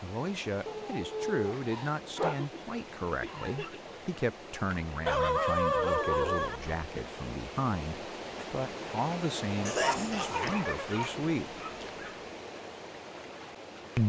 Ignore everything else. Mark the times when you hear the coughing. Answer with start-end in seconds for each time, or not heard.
2.1-3.9, 9.7-10.6.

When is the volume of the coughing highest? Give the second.
10 s.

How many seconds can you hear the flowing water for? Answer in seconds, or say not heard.
14 s.